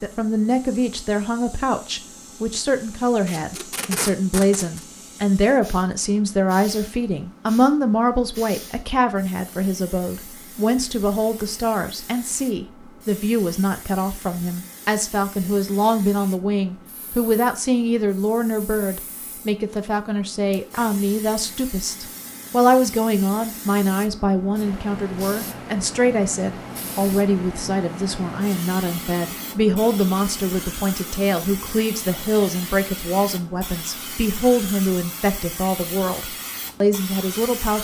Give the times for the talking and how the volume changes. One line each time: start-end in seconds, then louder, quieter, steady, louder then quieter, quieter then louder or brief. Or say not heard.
0.0-37.7 steady.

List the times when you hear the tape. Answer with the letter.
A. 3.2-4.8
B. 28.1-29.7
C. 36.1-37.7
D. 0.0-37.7
A.